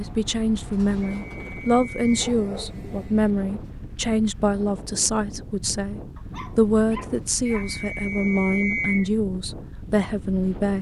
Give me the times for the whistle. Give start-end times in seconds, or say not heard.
1.2-2.2, 7.5-9.1.